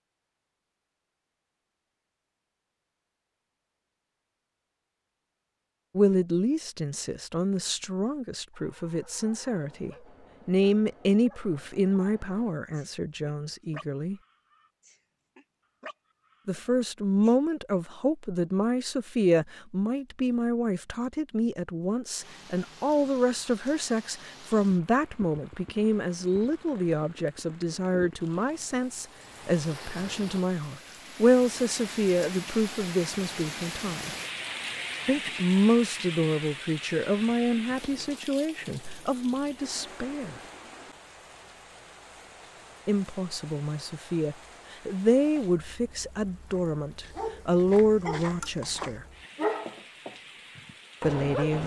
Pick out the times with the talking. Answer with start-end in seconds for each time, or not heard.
6.0-14.2, 16.4-34.1, 35.0-40.4, 42.9-49.0, 51.0-51.6.